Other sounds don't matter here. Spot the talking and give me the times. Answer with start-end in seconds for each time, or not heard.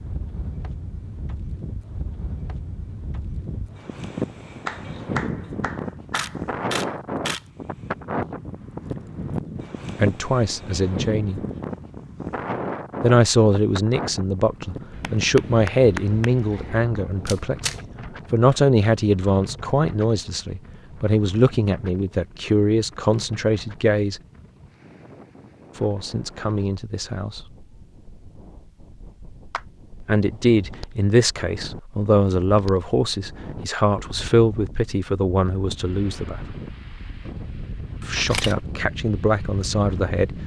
9.9-11.4, 13.0-17.7, 18.3-24.2, 25.8-27.4, 30.1-36.5, 38.0-40.4.